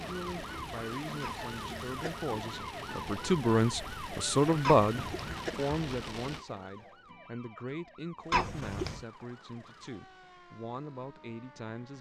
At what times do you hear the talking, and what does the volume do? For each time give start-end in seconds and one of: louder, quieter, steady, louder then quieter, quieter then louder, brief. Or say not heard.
0.0-11.9 louder then quieter.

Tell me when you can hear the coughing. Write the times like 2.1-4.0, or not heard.
1.2-2.1, 4.6-5.5, 8.3-9.0.